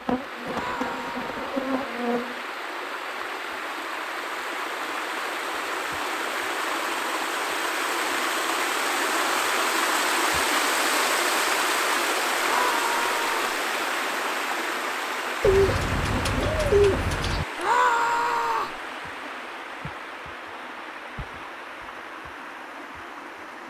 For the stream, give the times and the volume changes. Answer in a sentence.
You can hear the stream from 0.0 to 23.6 s, getting louder then quieter.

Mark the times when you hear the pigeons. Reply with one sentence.
You can hear the pigeons from 15.4 to 17.4 s.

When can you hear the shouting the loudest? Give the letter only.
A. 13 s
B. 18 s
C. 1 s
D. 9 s
B.